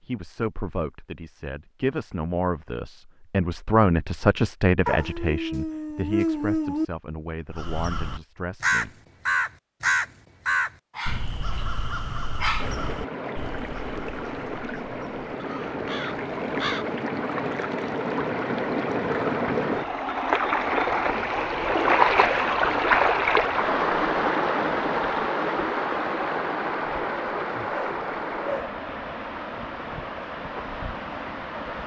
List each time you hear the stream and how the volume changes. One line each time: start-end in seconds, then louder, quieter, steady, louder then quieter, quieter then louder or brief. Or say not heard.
12.6-31.8 louder then quieter.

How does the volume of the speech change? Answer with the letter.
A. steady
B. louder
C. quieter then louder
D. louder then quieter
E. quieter
D.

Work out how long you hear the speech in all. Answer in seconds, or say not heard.
9 s.